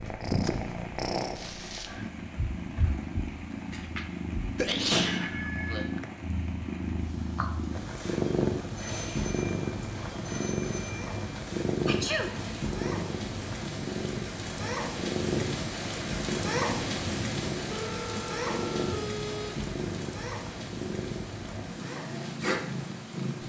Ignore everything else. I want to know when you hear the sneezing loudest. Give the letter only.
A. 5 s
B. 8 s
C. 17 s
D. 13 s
A.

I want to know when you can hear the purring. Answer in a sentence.
You can hear the purring from 0.0 to 23.4 s.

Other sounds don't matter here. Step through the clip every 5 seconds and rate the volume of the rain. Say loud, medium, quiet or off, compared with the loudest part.
quiet, quiet, medium, loud, medium.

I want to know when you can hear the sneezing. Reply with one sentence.
The sneezing can be heard from 4.5 to 5.8 s and from 11.8 to 12.6 s.